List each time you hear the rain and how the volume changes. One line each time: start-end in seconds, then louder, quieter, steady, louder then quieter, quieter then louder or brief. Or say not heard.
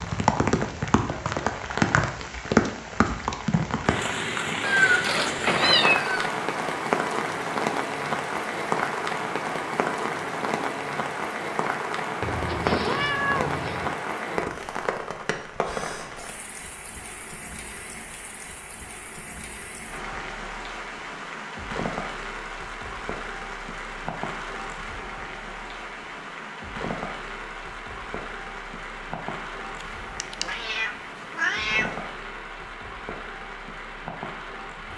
0.0-34.9 quieter.